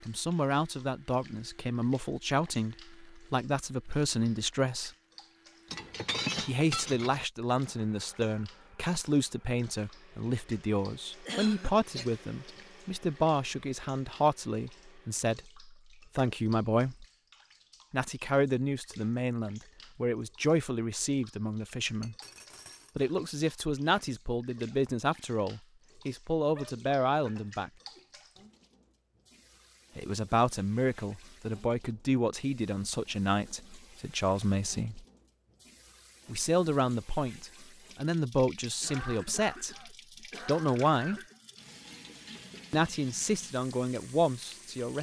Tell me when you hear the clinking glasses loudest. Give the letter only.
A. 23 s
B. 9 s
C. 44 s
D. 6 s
D.